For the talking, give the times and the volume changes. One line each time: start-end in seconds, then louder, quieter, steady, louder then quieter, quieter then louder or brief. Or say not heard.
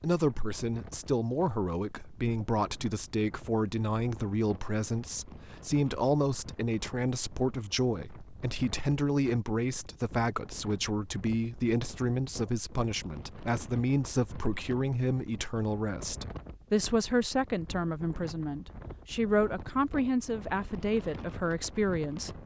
0.0-22.4 steady.